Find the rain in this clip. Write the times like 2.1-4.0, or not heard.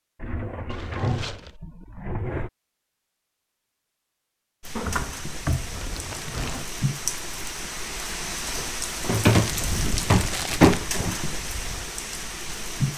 4.6-12.9.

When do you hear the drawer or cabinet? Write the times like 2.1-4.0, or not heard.
0.2-2.5, 4.8-6.7, 9.0-11.2.